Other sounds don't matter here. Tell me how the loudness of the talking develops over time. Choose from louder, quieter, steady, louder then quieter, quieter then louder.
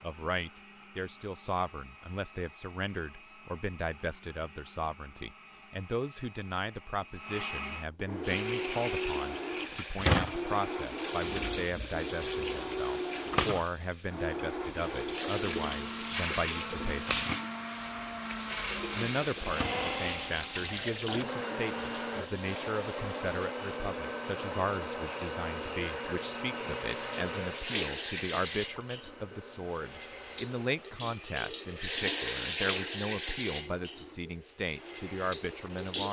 steady.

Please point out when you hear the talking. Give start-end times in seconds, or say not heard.
0.0-17.2, 18.9-36.0.